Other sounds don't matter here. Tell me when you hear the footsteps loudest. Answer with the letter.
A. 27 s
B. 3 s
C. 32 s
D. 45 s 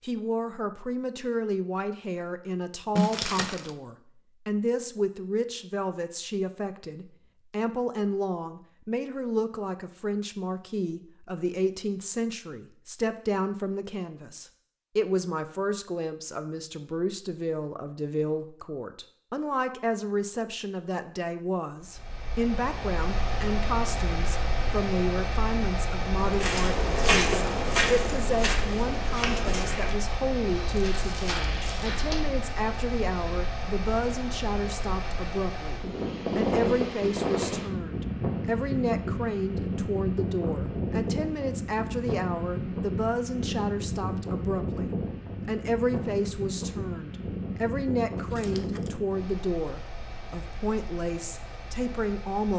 A.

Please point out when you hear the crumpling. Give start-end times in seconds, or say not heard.
3.0-3.7, 30.9-32.0, 48.1-48.9.